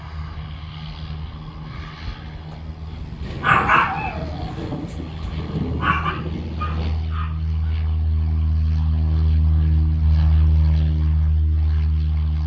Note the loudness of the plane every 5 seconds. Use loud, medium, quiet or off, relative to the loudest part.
medium, loud, loud.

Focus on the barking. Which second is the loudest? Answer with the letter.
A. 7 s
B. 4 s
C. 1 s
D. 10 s
B.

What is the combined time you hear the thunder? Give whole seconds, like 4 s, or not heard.
4 s.